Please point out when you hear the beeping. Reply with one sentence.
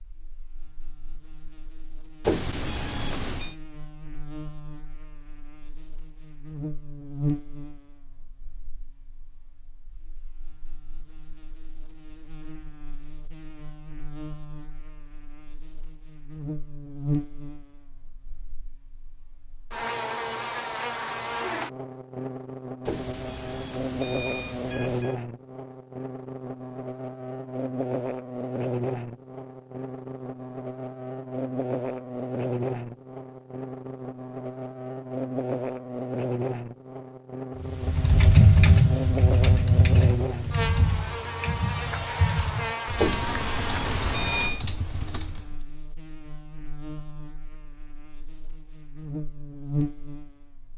The beeping can be heard from 2.2 to 3.5 s, from 22.9 to 25.2 s and from 43.0 to 44.6 s.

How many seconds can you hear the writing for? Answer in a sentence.
The writing can't be heard in this clip.